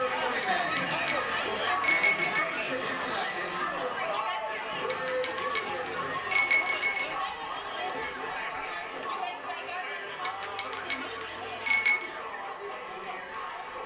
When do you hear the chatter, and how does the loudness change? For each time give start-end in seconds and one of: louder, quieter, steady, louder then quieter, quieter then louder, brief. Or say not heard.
0.0-13.8 quieter.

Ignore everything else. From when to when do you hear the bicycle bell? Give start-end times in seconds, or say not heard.
0.4-2.5, 4.8-7.2, 10.2-12.1.